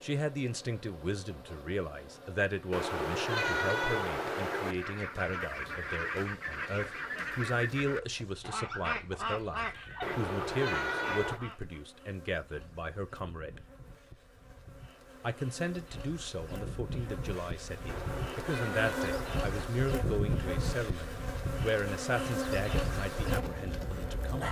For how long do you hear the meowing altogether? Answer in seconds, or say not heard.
5 s.